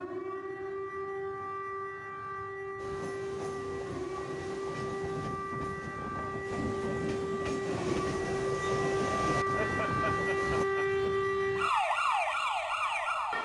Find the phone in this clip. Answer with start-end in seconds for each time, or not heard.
not heard.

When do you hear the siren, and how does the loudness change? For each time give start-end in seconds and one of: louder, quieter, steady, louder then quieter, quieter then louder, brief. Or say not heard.
0.0-13.3 louder.